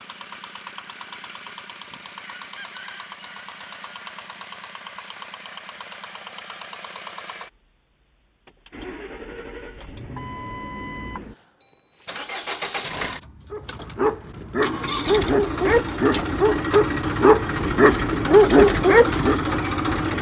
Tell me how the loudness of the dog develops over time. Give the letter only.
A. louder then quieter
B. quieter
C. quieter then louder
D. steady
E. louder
E.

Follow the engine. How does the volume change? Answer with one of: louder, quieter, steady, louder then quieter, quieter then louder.
louder.